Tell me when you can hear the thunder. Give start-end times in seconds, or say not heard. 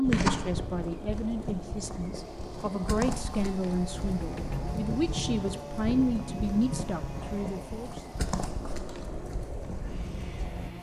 3.9-7.7.